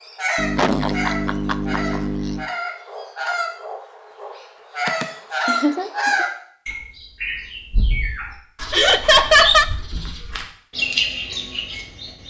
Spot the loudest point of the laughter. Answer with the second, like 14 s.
9 s.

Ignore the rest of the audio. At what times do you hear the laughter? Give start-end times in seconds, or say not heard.
0.3-2.5, 4.8-6.2, 8.7-9.7.